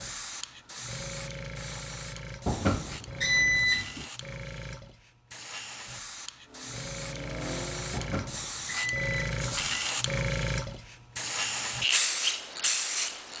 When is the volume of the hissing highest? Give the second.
12 s.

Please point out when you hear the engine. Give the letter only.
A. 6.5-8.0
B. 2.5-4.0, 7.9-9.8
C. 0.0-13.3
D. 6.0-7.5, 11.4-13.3
A.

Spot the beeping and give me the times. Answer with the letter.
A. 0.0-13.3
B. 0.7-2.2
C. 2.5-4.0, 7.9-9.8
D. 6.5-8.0
C.